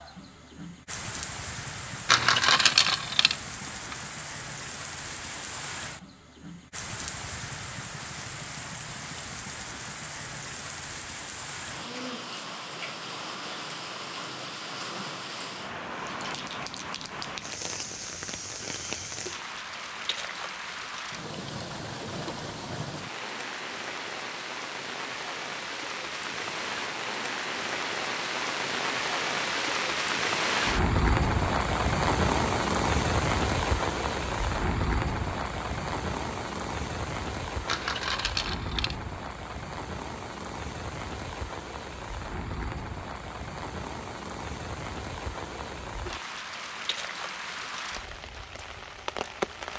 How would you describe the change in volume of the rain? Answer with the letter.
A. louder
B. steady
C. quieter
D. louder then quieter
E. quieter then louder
D.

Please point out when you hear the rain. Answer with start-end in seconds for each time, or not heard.
0.0-49.7.